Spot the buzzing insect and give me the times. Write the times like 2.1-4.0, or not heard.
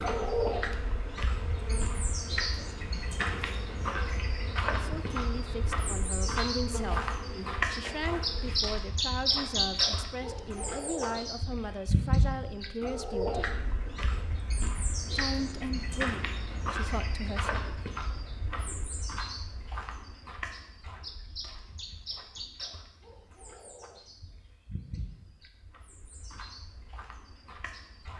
0.0-8.7.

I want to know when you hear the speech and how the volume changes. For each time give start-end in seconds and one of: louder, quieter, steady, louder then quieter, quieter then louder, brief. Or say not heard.
4.8-13.5 steady
15.1-17.6 brief.